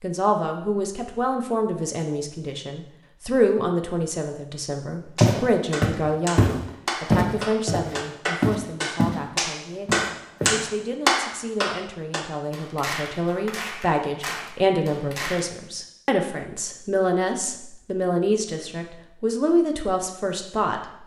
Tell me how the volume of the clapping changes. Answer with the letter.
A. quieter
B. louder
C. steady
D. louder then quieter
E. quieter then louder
D.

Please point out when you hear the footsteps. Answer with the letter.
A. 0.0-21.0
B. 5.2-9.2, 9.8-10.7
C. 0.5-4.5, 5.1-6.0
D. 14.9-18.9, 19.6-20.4
B.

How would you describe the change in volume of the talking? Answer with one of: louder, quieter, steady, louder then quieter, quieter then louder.
quieter then louder.